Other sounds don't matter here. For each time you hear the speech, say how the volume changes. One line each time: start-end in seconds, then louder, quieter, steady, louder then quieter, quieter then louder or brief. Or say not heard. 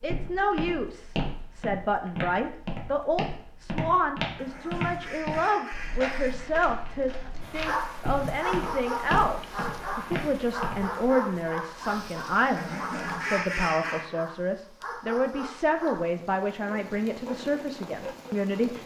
0.0-18.8 steady.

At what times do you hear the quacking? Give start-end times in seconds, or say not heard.
4.3-6.5, 12.6-14.1.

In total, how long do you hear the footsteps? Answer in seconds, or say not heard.
11 s.